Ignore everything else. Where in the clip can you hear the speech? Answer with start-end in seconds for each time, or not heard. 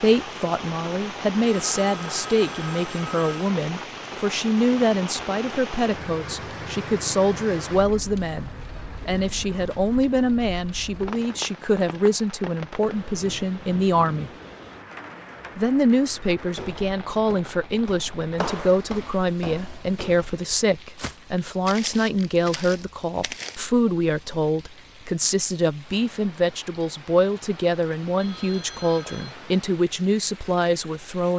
0.0-14.3, 15.6-31.3.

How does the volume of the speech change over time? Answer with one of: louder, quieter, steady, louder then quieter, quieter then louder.
steady.